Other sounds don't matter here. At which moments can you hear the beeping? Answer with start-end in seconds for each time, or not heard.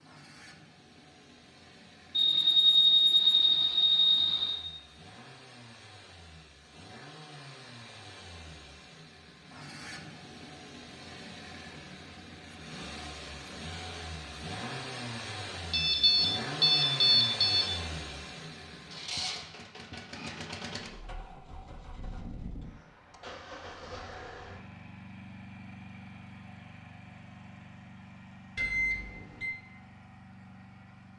2.1-4.6, 15.7-17.6, 28.6-29.6.